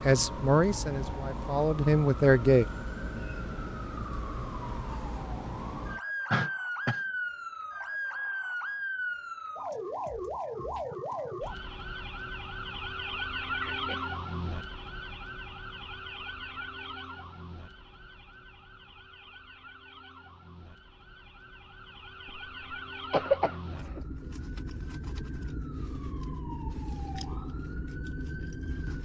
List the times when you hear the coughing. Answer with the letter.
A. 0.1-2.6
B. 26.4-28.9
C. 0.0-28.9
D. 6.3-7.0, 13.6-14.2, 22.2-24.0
D.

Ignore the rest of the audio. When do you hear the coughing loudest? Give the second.
23 s.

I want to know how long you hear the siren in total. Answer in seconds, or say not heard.
29 s.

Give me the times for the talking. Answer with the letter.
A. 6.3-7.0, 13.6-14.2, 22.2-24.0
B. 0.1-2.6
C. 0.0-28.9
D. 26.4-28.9
B.